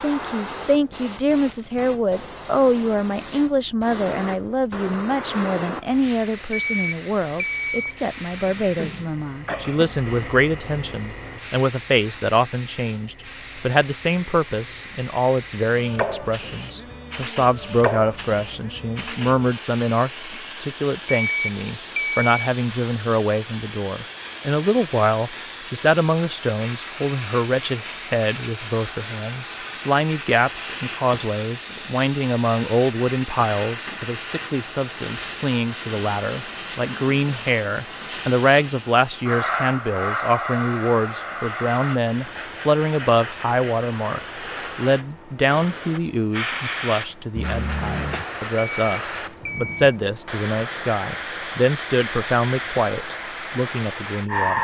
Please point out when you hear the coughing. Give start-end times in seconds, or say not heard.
8.4-9.9, 47.4-48.2.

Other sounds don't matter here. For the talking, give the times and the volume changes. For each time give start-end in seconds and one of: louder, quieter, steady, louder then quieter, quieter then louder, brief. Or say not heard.
0.0-54.6 steady.